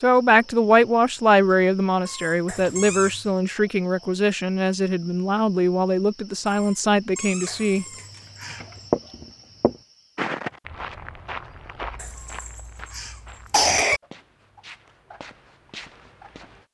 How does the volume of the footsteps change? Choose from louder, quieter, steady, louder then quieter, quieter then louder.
quieter.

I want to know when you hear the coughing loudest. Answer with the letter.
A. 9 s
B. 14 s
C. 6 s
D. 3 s
B.